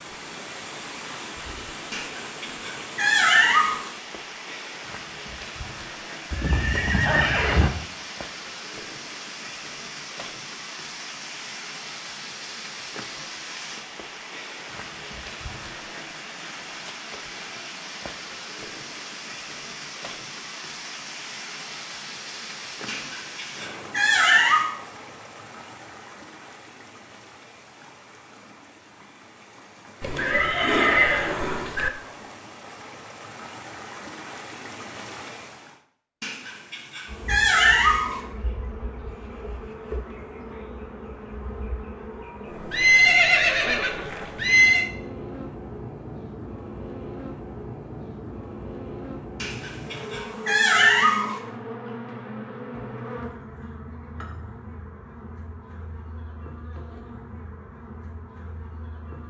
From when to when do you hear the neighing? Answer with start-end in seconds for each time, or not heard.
6.3-7.7, 30.0-31.9, 42.7-44.9.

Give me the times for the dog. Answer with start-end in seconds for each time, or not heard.
1.9-3.8, 22.9-24.8, 36.2-38.2, 49.4-51.4.